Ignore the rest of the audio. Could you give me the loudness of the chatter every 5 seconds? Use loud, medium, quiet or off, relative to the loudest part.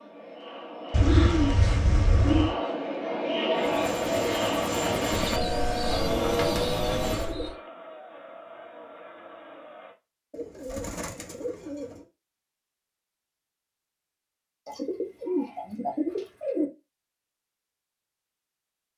loud, medium, off, off.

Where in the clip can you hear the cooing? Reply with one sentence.
The cooing can be heard from 0.9 to 2.5 s, from 5.1 to 7.5 s, from 10.3 to 12.1 s and from 14.7 to 16.6 s.